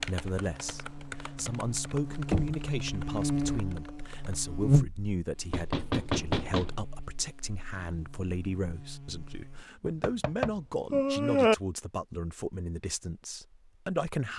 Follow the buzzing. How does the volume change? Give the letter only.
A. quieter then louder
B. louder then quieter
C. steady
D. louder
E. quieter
B.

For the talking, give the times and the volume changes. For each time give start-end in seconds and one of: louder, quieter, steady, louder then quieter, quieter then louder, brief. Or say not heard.
0.0-14.3 steady.